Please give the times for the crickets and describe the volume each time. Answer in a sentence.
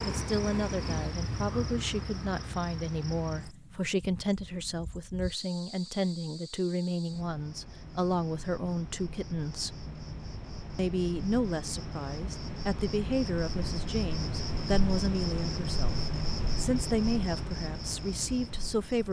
The crickets can be heard from 0.0 to 19.0 s, getting quieter then louder.